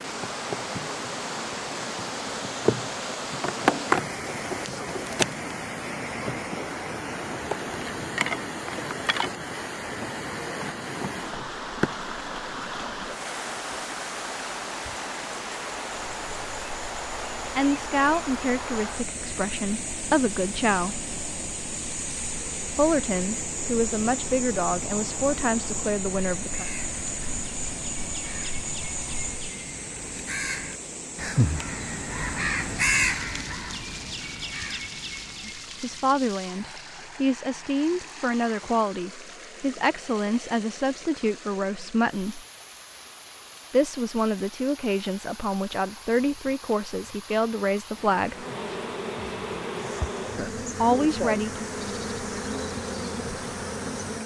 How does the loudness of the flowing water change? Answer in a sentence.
The loudness of the flowing water goes down.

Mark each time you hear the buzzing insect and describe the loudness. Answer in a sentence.
You can hear the buzzing insect from 0.0 to 29.6 s, getting quieter then louder; and from 48.3 to 54.2 s, at a steady volume.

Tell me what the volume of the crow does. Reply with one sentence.
The loudness of the crow goes up, then down.